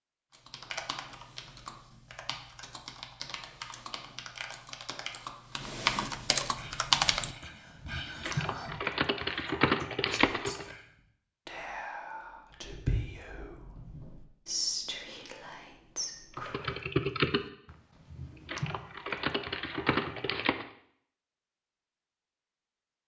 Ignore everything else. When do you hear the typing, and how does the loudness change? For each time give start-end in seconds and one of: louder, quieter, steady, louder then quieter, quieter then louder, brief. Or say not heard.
0.3-10.8 louder
16.4-20.6 quieter then louder.